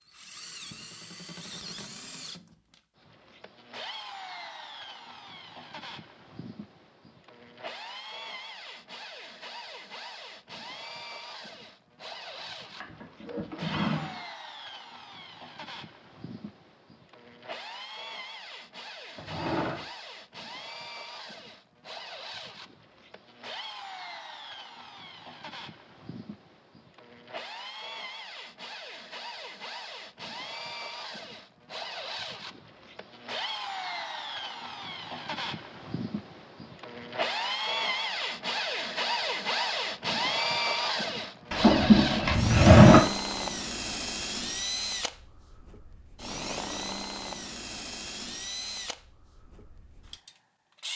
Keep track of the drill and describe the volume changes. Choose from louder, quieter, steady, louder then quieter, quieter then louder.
louder.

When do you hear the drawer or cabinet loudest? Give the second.
43 s.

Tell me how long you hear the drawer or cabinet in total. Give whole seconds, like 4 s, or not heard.
4 s.